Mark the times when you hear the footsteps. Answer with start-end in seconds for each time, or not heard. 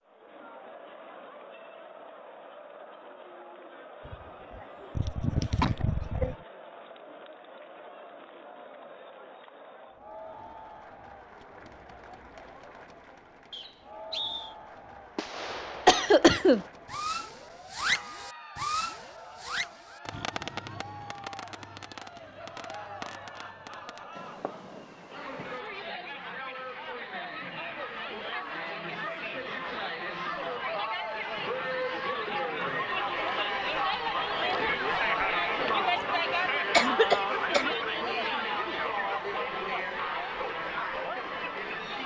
not heard.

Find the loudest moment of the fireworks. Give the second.
18 s.